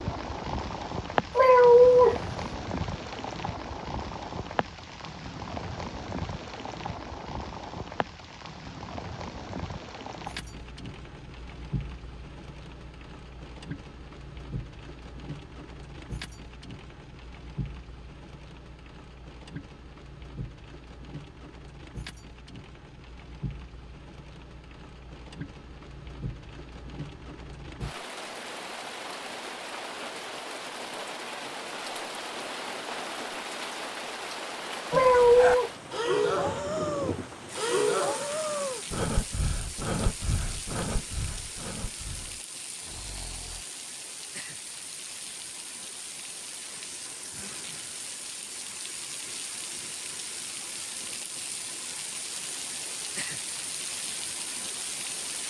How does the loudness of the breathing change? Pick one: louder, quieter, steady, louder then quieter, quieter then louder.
quieter.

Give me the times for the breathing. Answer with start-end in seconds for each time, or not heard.
34.9-43.6.